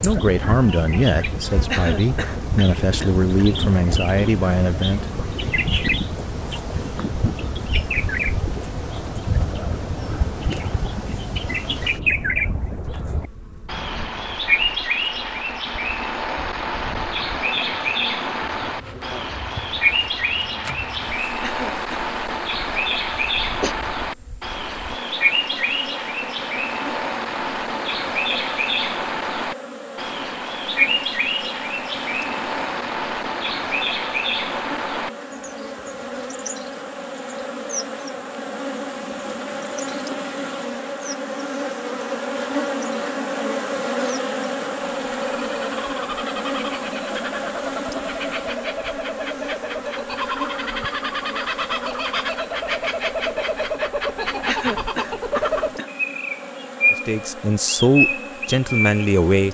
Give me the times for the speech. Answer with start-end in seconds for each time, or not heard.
0.0-5.0, 56.9-59.4.